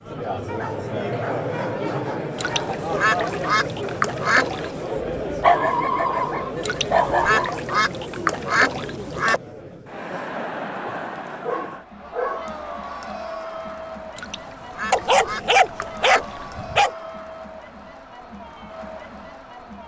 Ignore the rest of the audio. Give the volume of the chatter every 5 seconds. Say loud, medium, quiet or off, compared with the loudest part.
loud, loud, medium, medium.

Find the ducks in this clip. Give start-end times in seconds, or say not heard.
2.4-4.9, 6.6-9.4, 14.2-16.6.